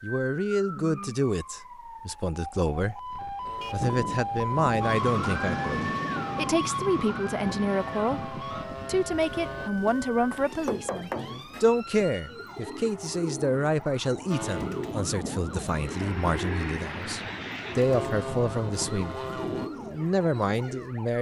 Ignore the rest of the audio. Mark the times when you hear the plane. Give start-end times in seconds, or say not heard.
3.4-9.7, 14.3-19.7.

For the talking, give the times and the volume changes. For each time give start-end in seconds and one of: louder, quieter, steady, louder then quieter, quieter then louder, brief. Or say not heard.
0.0-21.1 steady.